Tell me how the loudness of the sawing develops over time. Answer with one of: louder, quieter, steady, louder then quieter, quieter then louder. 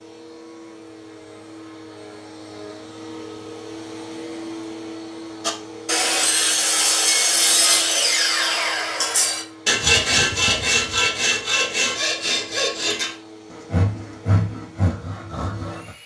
quieter.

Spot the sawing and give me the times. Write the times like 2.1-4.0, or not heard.
5.4-15.9.